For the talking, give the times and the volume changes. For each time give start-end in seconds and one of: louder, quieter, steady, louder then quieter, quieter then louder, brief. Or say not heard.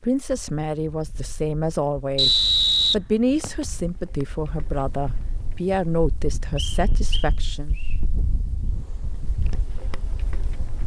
0.0-7.8 steady.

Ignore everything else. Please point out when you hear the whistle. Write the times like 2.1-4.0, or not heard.
2.1-3.6, 6.5-8.0.